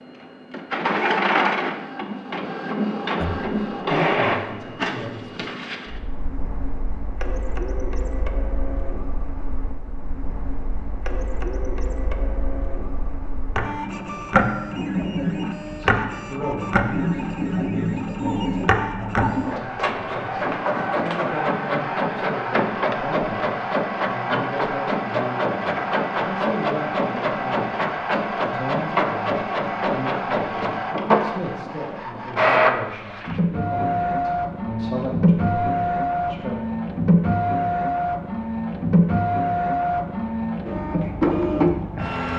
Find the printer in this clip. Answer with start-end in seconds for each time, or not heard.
0.0-42.3.